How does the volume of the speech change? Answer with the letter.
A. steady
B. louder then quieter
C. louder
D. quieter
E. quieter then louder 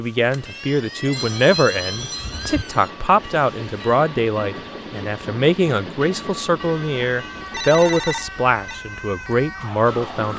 A.